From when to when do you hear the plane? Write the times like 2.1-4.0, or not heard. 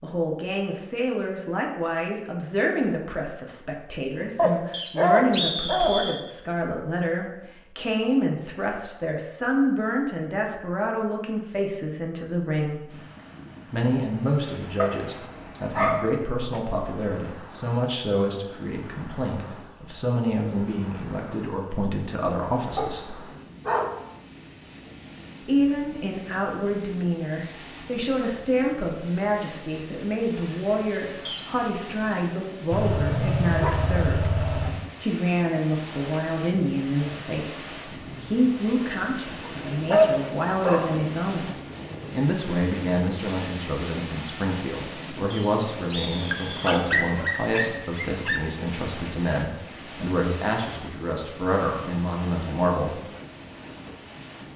not heard.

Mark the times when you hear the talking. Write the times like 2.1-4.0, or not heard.
0.0-12.9, 13.7-23.2, 25.4-34.4, 35.0-41.5, 42.1-53.0.